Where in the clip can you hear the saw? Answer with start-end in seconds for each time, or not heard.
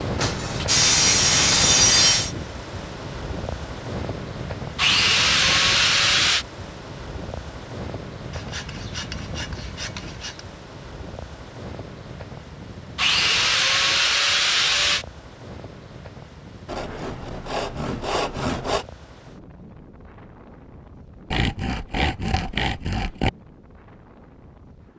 0.1-2.4, 4.8-6.5, 8.3-10.4, 12.9-15.1, 16.6-18.9, 21.3-23.3.